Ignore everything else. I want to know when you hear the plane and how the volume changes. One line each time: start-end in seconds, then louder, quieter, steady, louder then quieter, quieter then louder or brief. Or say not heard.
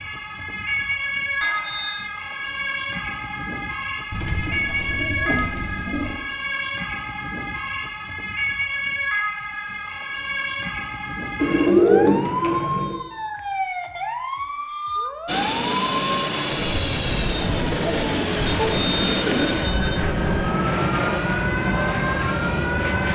15.2-23.0 steady.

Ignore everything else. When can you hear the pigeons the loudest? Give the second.
12 s.